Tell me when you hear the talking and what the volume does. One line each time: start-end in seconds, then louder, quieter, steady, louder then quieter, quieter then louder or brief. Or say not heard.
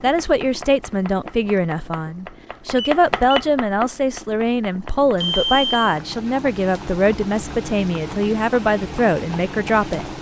0.0-10.1 steady.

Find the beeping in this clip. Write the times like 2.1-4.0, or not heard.
2.8-3.5, 5.2-6.0.